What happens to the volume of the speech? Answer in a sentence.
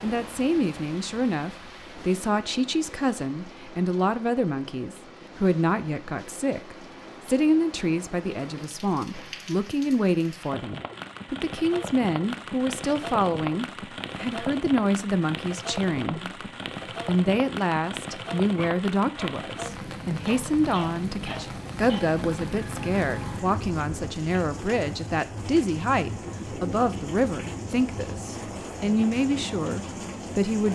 The volume of the speech stays about the same.